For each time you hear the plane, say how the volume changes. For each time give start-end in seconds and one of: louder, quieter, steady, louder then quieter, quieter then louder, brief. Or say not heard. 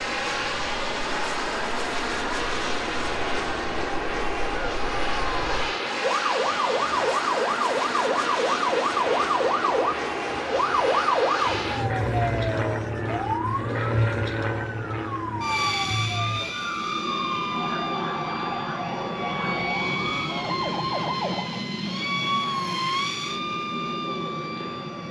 0.0-25.0 steady.